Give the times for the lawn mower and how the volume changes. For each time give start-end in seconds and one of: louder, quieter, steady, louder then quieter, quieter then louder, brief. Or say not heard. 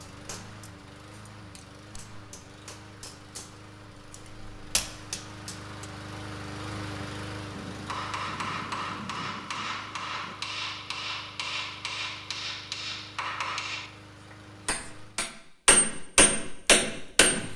0.0-15.3 louder then quieter.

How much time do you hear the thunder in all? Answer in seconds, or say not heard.
3 s.